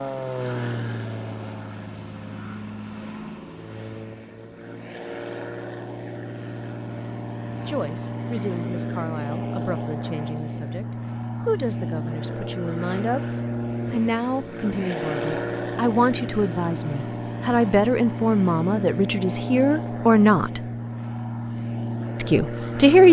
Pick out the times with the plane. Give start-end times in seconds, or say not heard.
0.0-23.0.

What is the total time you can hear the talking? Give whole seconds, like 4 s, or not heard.
13 s.